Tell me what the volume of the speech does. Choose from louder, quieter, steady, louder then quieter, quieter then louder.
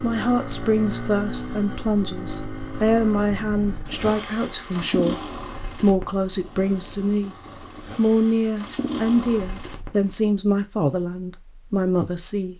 steady.